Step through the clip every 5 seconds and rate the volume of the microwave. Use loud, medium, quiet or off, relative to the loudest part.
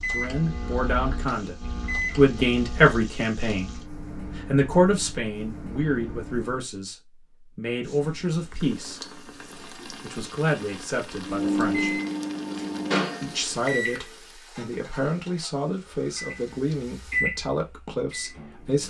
medium, quiet, loud, medium.